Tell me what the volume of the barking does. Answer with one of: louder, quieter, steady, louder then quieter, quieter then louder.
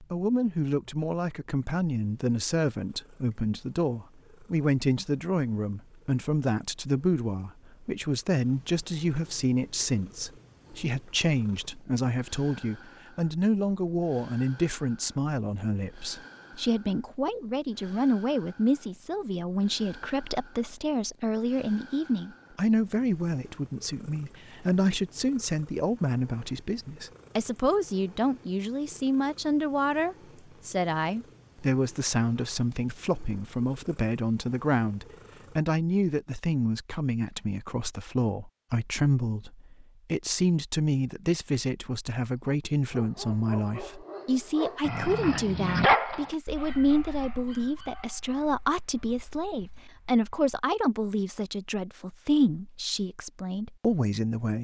louder then quieter.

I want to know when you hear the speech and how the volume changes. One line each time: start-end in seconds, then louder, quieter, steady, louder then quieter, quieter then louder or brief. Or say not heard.
0.0-54.5 steady.